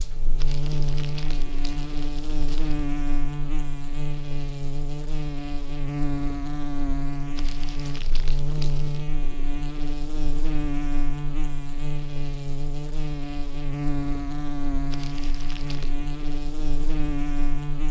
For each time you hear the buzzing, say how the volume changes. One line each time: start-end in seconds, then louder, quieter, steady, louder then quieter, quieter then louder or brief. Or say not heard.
0.0-17.8 steady.